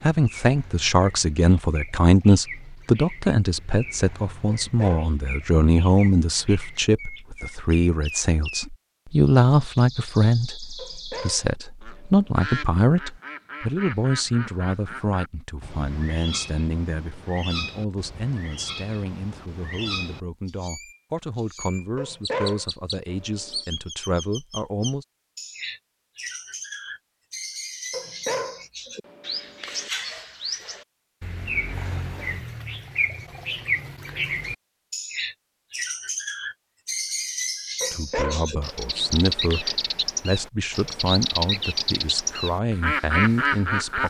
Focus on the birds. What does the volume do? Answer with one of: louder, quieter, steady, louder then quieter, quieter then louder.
louder.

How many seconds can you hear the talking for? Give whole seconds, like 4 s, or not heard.
31 s.